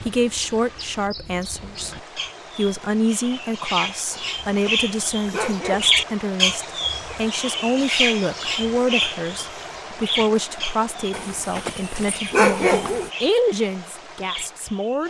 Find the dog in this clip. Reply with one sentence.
The dog can be heard from 4.1 to 6.0 s and from 11.1 to 13.1 s.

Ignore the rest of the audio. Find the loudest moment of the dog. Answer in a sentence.
The volume of the dog peaks at 13 seconds.